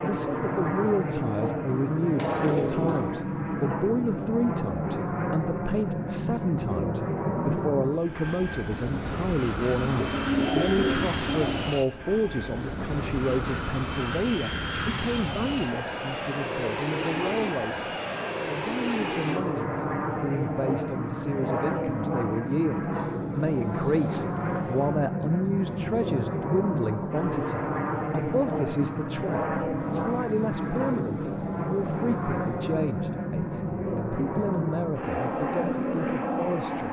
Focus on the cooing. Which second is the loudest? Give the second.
10 s.